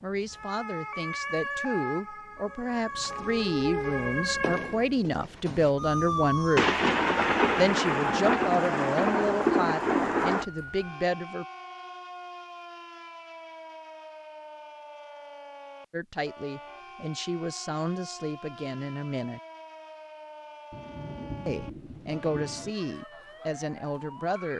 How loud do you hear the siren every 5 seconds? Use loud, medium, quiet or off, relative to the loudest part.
loud, loud, medium, quiet, quiet.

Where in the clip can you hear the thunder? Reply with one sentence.
You can hear the thunder from 6.5 to 10.4 s and from 20.7 to 22.8 s.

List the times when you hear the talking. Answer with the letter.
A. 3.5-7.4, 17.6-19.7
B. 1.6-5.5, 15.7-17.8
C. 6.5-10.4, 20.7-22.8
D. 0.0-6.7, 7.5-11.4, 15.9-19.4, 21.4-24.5
D.